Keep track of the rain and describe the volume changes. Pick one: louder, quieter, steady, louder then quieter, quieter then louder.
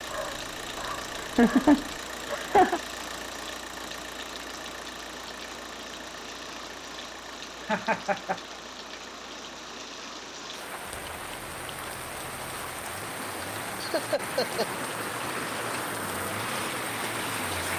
louder.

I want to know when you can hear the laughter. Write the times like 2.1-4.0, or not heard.
1.1-2.8, 7.7-8.3, 13.8-14.7.